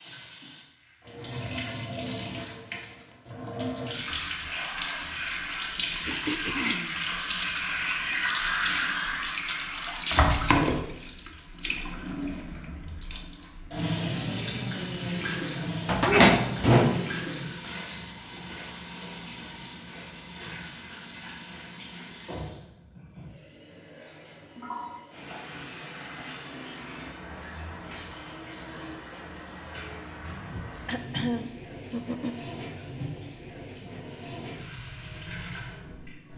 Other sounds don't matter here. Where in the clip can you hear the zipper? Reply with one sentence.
The zipper can't be heard in this clip.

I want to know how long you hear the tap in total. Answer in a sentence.
You can hear the tap for 36 seconds altogether.